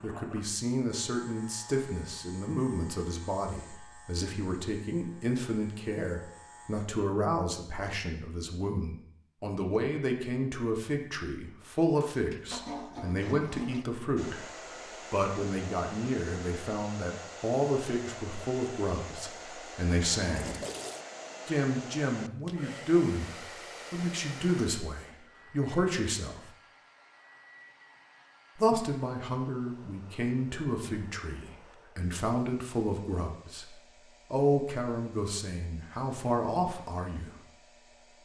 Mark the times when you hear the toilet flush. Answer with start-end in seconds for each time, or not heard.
11.6-13.8, 20.2-21.1.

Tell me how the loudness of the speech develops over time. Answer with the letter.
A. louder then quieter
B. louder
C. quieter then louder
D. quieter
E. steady
E.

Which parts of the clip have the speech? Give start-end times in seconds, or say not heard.
0.0-14.4, 15.1-20.6, 21.4-26.5, 28.6-37.4.